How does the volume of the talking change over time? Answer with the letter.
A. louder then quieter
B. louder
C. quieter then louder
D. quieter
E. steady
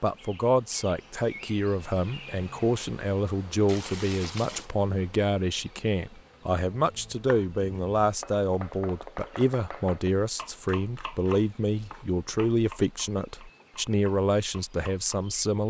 E.